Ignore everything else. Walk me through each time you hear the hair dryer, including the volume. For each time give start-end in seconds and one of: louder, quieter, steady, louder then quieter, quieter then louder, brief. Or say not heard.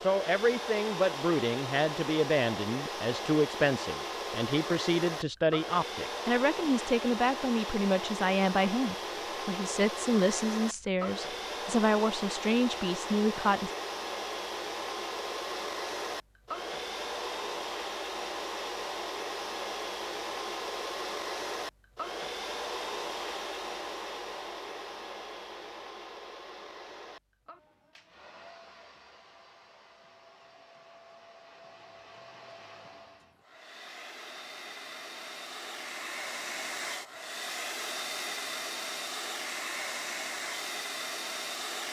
0.0-41.8 quieter then louder.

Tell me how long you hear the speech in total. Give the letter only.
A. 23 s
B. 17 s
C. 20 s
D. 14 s
D.